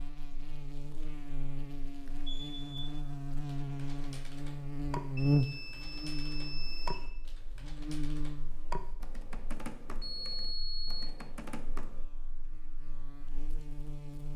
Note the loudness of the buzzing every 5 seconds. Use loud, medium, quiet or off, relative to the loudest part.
medium, loud, quiet.